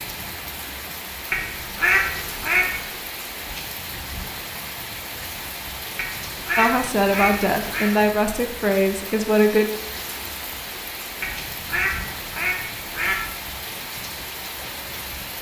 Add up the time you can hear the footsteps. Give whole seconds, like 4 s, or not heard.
not heard.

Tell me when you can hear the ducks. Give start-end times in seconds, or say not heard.
1.3-2.9, 6.0-7.9, 11.2-13.3.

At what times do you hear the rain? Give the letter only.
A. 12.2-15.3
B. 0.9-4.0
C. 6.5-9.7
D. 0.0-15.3
D.